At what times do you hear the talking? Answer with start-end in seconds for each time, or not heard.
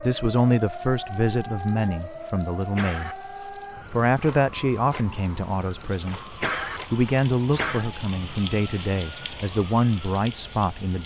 0.0-3.2, 3.9-11.0.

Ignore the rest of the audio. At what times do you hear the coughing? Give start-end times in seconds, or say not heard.
2.8-3.5, 6.4-7.9.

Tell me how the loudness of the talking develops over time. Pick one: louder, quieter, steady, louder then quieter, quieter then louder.
steady.